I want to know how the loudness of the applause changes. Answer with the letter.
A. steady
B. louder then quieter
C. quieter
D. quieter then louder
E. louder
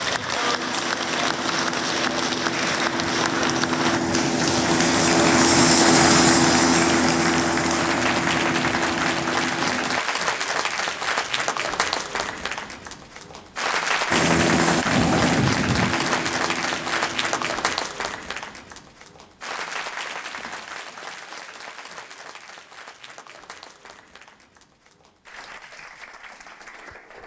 C.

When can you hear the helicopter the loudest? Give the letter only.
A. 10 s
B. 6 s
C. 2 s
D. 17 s
B.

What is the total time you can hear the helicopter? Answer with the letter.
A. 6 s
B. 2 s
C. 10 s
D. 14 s
D.